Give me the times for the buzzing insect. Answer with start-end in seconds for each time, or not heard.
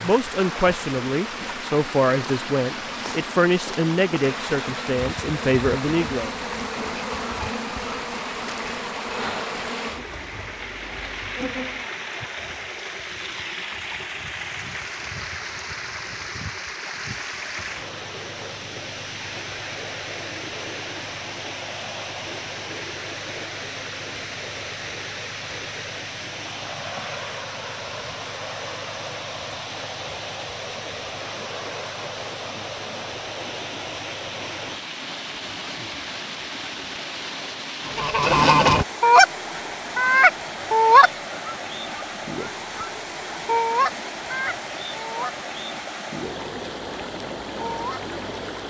0.1-12.4.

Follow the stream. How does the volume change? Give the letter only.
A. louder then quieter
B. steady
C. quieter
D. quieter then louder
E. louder
B.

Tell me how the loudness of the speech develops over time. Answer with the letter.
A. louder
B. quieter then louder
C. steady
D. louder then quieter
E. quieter
C.